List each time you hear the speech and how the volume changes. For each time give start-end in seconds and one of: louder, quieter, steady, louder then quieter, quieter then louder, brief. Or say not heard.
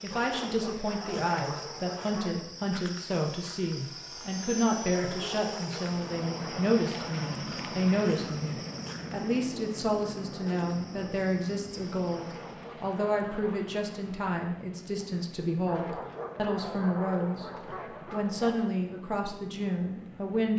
0.0-17.4 steady
18.1-20.5 brief.